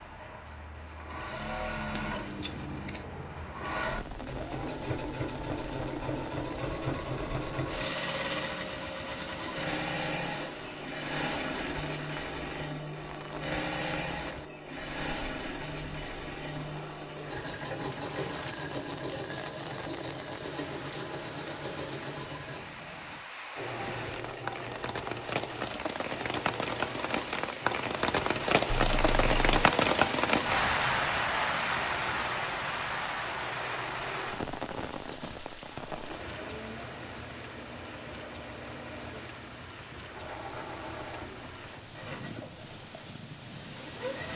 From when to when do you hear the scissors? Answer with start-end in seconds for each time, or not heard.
1.9-3.0, 28.6-29.6.